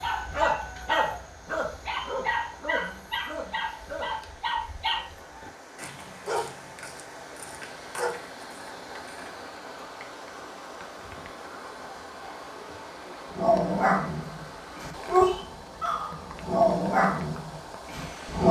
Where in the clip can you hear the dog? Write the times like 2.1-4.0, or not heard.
0.0-9.3, 13.3-18.4.